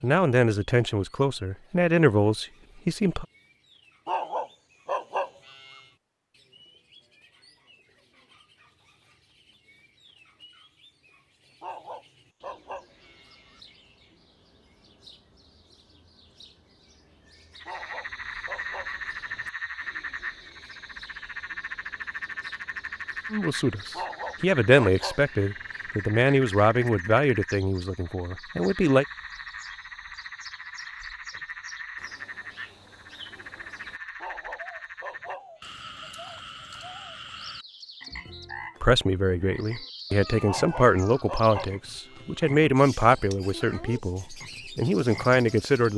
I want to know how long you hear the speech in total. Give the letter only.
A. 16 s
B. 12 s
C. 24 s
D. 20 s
A.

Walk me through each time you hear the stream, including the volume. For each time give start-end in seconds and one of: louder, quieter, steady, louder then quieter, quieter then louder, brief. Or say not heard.
not heard.